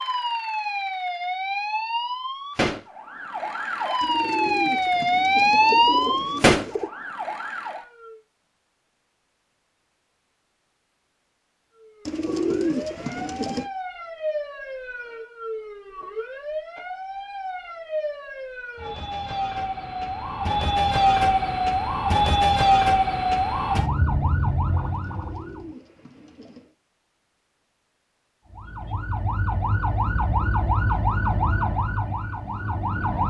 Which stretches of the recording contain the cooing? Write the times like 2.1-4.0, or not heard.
4.0-6.9, 12.1-13.7, 25.0-26.7.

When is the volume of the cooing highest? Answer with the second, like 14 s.
13 s.